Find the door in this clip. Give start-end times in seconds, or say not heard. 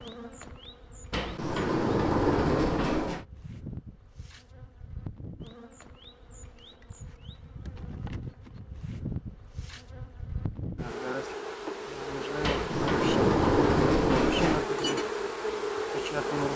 1.1-3.2, 12.4-14.7.